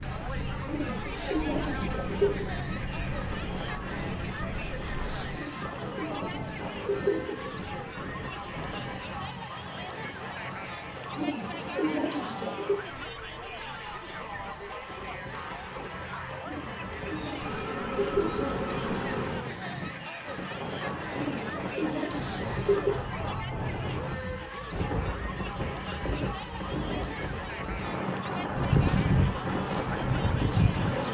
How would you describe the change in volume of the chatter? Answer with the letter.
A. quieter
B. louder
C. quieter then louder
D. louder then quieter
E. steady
E.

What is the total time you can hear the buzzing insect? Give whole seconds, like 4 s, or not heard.
7 s.